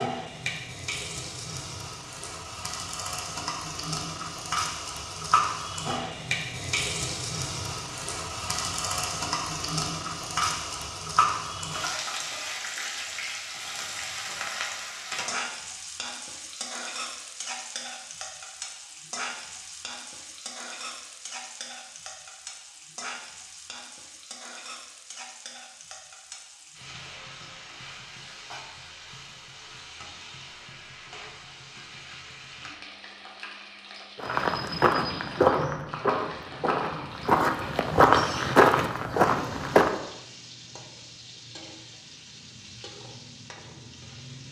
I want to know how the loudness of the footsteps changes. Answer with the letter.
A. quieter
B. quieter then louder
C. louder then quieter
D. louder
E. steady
B.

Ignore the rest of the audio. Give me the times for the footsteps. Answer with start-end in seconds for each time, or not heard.
34.2-40.0.